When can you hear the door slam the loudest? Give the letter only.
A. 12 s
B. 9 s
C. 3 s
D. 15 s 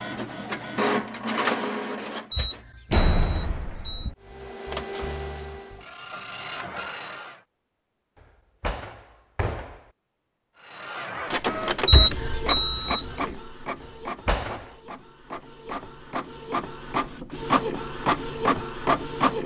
C.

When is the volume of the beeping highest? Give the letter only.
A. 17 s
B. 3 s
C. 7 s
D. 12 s
D.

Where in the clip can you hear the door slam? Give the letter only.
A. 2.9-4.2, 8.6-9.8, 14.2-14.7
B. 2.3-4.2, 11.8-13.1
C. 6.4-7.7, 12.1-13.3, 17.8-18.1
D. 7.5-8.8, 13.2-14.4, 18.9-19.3
A.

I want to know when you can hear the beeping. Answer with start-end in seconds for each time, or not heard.
2.3-4.2, 11.8-13.1.